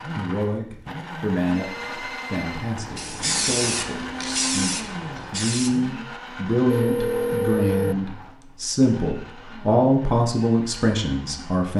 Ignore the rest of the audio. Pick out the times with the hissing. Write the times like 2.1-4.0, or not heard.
2.8-5.7.